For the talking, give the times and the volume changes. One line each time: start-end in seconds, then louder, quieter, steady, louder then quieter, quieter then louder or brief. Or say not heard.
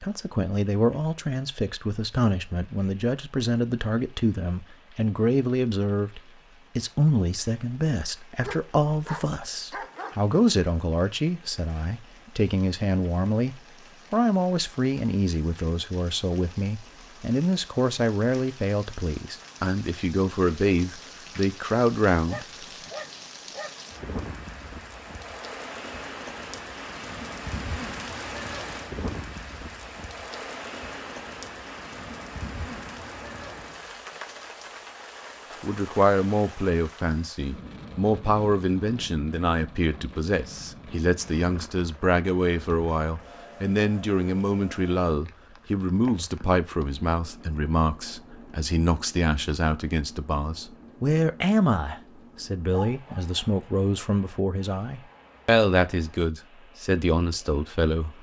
0.0-22.4 steady
35.6-58.1 steady.